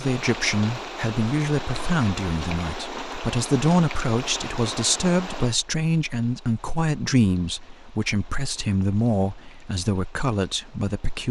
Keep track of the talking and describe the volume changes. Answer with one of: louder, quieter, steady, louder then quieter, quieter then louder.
steady.